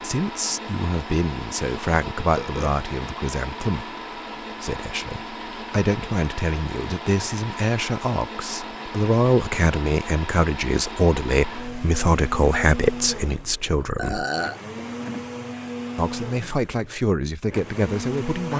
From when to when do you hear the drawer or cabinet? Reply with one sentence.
The drawer or cabinet can be heard from 14.8 to 15.3 s.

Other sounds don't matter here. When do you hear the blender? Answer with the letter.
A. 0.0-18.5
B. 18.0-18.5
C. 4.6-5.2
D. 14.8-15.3
A.